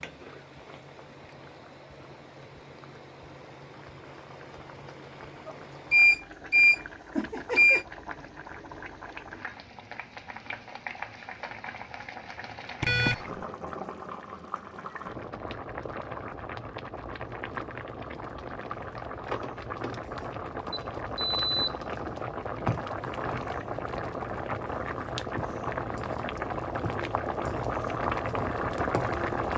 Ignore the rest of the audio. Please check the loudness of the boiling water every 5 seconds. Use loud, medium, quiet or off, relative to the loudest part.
quiet, quiet, medium, medium, loud, loud.